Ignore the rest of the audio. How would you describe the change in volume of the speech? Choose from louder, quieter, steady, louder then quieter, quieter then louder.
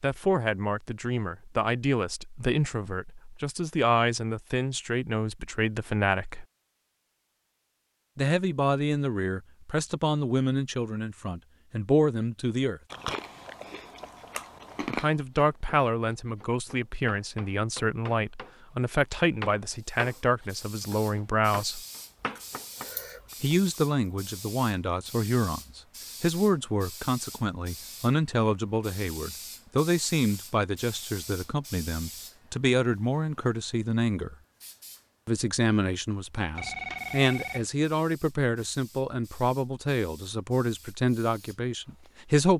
steady.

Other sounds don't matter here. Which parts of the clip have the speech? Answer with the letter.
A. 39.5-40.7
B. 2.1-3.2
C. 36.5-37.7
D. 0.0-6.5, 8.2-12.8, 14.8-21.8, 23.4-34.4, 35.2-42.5
D.